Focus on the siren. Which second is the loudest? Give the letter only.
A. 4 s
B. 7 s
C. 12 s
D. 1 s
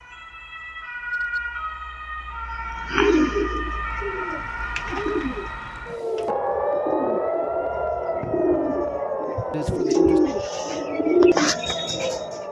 B.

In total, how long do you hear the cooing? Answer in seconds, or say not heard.
10 s.